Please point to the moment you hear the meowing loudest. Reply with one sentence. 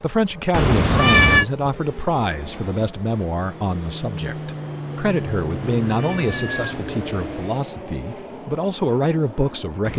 The volume of the meowing peaks at 1 second.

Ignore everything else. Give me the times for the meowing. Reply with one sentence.
The meowing can be heard from 0.5 to 1.4 s and from 5.5 to 7.5 s.